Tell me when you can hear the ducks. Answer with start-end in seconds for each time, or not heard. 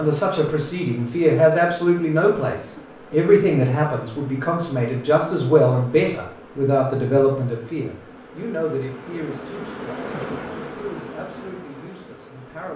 not heard.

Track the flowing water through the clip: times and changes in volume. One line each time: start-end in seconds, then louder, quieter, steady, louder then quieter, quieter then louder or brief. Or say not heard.
not heard.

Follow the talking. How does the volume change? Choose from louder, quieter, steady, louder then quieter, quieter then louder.
quieter.